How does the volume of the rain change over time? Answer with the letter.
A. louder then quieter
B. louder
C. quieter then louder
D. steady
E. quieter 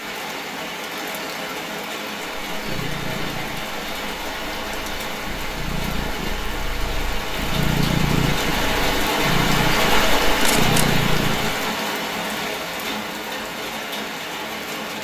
A.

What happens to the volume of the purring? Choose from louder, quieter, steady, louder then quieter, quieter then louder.
louder.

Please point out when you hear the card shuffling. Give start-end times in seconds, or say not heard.
10.4-11.0.